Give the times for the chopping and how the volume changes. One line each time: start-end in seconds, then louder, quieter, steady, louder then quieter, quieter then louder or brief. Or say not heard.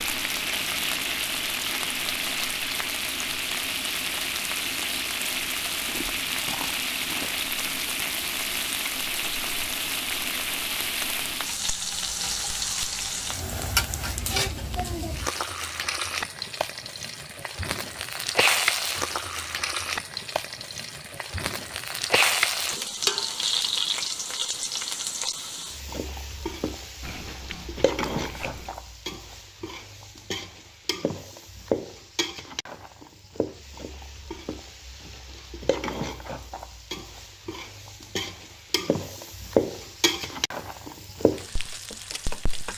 not heard.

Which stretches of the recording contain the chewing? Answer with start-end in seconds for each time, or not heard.
5.8-7.3, 27.0-28.8.